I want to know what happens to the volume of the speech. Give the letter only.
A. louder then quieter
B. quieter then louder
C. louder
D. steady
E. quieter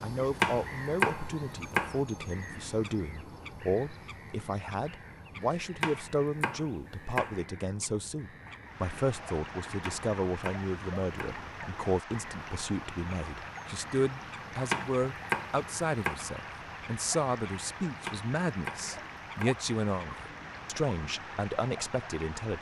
D.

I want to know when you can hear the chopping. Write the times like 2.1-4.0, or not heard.
0.4-2.0, 5.8-7.4, 9.8-11.4, 14.7-16.1, 18.1-19.6.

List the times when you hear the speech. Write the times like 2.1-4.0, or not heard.
0.0-22.5.